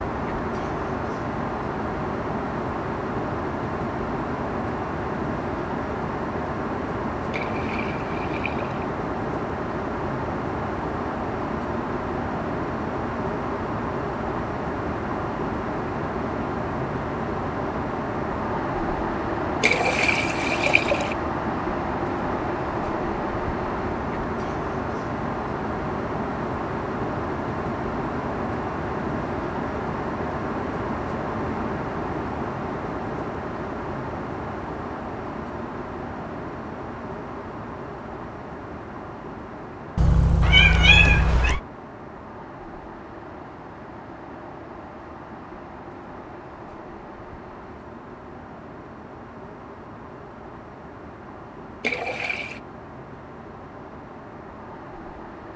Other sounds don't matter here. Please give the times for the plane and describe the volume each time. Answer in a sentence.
You can hear the plane from 0.0 to 55.5 s, getting quieter.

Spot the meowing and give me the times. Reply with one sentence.
You can hear the meowing from 40.0 to 41.6 s.